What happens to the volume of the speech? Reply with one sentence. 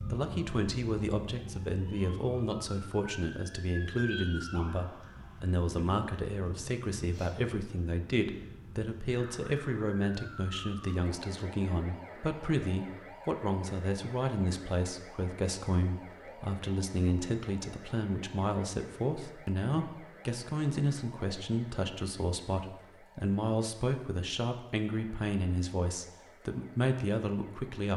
The loudness of the speech stays about the same.